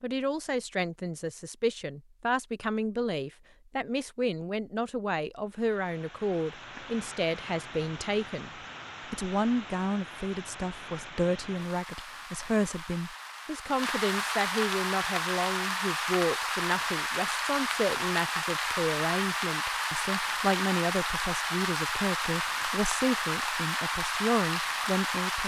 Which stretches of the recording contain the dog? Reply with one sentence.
You can't hear the dog here.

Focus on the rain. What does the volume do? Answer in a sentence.
The volume of the rain goes up.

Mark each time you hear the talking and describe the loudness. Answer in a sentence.
The talking can be heard from 0.0 to 8.5 s, at a steady volume; and from 9.1 to 25.4 s, at a steady volume.